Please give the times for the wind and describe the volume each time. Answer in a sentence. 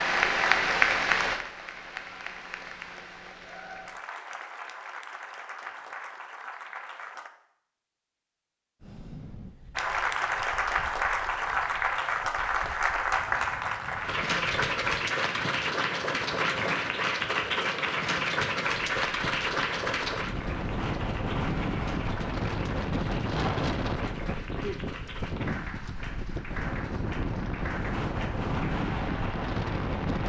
You can hear the wind from 8.8 to 30.2 s, getting louder.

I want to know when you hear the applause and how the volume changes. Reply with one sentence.
The applause can be heard from 0.0 to 7.3 s, getting quieter; and from 9.8 to 30.2 s, getting quieter.